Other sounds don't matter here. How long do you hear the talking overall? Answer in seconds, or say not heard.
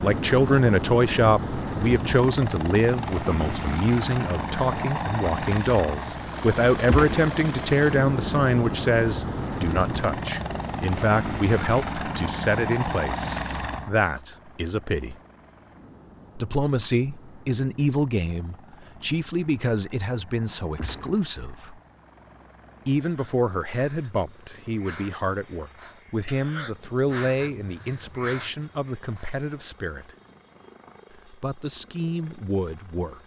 30 s.